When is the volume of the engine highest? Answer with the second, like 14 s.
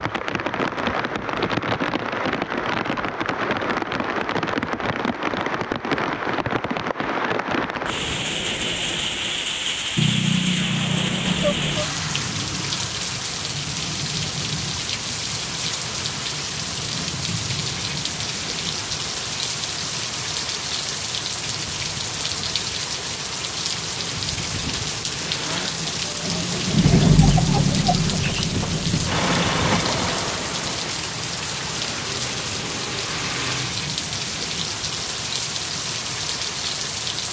27 s.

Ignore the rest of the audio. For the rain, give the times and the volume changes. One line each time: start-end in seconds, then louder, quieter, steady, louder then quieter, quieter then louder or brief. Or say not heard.
0.0-37.2 steady.